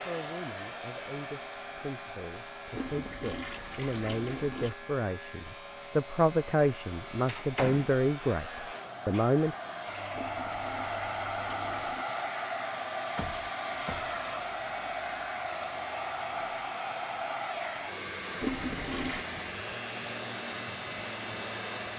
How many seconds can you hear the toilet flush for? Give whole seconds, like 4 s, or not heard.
5 s.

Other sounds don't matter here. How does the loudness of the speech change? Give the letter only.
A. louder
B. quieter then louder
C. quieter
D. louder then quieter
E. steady
A.